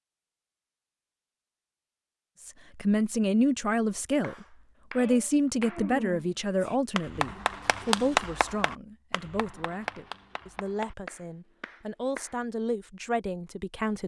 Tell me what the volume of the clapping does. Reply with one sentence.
The loudness of the clapping goes up, then down.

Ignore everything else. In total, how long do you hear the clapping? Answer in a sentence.
You can hear the clapping for 8 seconds altogether.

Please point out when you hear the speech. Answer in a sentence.
You can hear the speech from 2.5 to 14.0 s.